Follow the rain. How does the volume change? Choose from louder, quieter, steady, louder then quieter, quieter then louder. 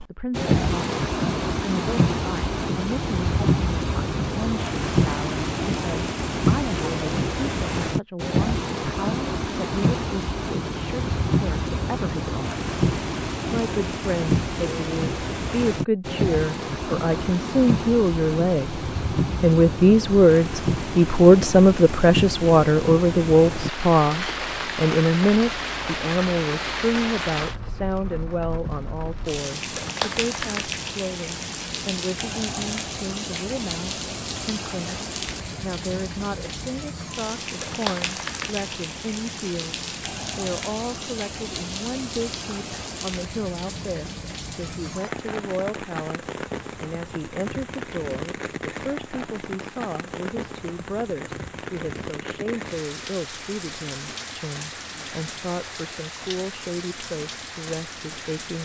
quieter.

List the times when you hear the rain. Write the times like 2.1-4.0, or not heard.
0.0-58.6.